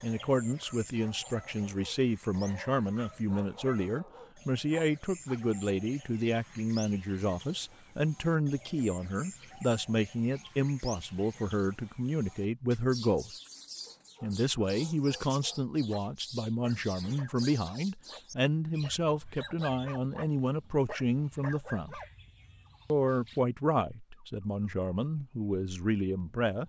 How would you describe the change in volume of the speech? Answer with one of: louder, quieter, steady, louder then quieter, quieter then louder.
steady.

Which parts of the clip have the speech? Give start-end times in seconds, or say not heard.
0.0-13.3, 14.2-22.0, 22.9-26.6.